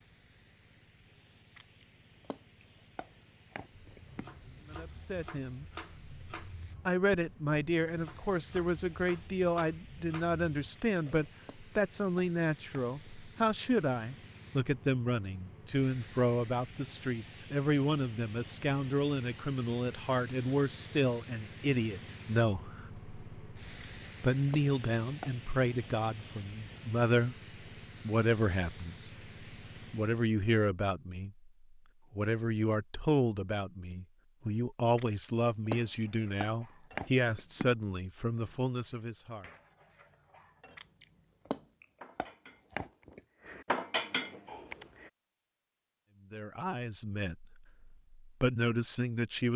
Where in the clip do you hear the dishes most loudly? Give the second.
44 s.